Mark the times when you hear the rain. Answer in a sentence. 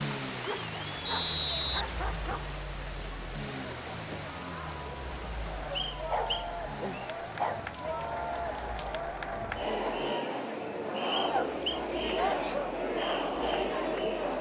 You can hear the rain from 0.0 to 8.9 s.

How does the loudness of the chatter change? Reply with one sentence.
The loudness of the chatter goes up.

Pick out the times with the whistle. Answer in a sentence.
The whistle can be heard from 1.1 to 2.5 s, from 5.8 to 7.1 s and from 11.1 to 11.8 s.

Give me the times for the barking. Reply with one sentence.
You can hear the barking from 0.4 to 2.6 s, from 6.1 to 7.6 s and from 11.3 to 12.8 s.